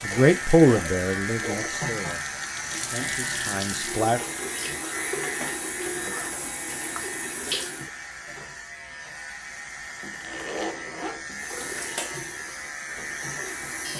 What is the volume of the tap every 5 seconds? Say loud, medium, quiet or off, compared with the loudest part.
loud, loud, medium.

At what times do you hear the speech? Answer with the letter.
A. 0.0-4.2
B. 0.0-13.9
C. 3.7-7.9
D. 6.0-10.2
A.